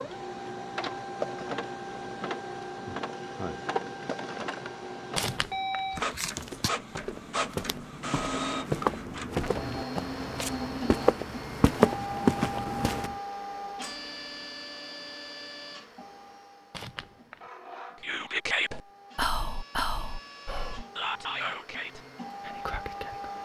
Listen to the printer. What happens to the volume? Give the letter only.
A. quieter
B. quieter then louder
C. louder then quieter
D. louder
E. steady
A.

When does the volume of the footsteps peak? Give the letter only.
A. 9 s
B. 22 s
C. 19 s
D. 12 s
D.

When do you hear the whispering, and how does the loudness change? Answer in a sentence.
You can hear the whispering from 18.0 to 23.4 s, getting quieter.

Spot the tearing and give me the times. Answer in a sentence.
The tearing can be heard from 5.2 to 6.7 s and from 16.7 to 17.4 s.